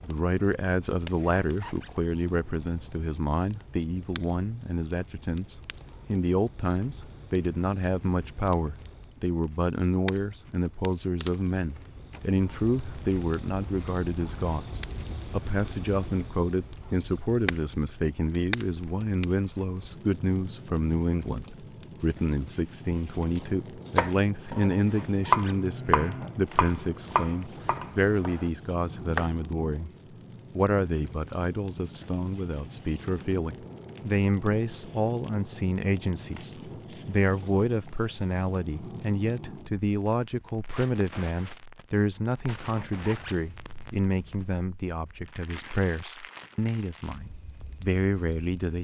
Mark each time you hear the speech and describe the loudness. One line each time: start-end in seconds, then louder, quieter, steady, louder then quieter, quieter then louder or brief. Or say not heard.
0.0-29.9 steady
30.5-48.8 steady.